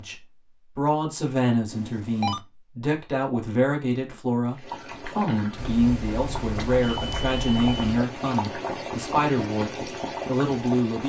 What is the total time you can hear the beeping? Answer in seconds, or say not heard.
3 s.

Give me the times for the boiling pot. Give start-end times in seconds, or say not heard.
4.5-11.0.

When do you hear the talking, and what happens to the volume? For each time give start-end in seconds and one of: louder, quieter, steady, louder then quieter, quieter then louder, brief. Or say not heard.
0.0-11.0 steady.